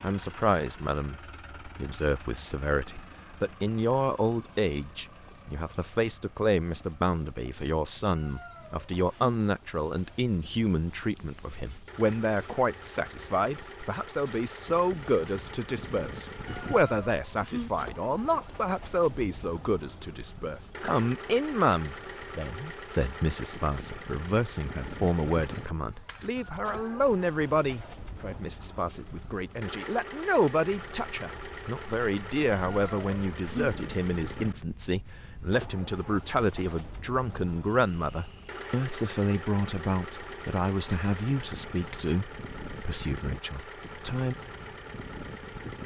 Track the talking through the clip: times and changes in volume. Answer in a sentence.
The talking can be heard from 0.0 to 44.4 s, at a steady volume.